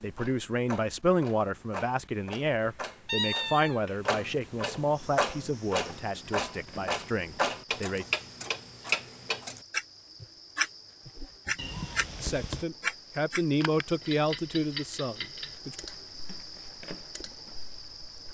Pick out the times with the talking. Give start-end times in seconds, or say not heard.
0.0-8.1, 12.2-15.8.